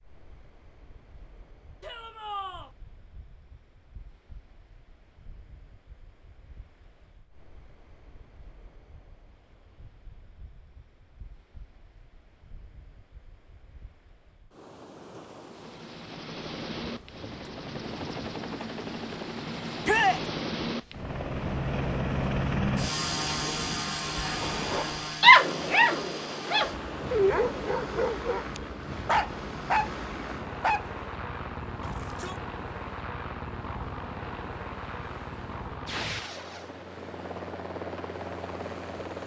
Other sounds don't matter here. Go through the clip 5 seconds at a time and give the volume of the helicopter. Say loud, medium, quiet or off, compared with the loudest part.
off, off, off, medium, loud, medium, medium, medium.